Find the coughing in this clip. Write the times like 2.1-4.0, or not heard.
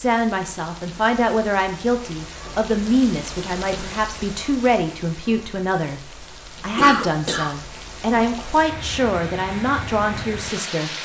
6.8-7.7.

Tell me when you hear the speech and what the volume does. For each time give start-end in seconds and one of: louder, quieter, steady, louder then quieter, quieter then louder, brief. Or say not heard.
0.0-10.9 steady.